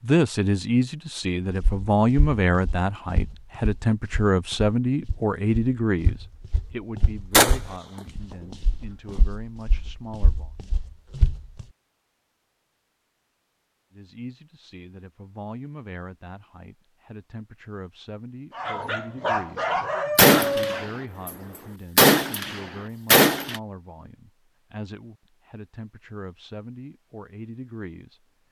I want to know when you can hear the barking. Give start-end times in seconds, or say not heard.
18.5-20.9.